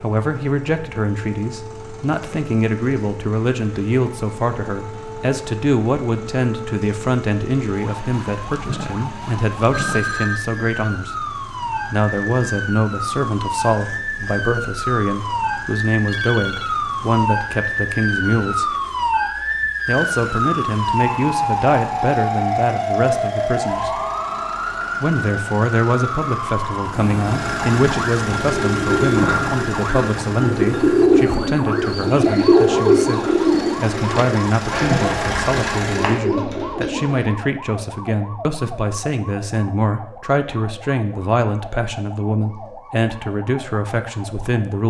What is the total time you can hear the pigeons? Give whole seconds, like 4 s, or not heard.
9 s.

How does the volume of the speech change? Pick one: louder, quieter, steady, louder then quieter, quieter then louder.
steady.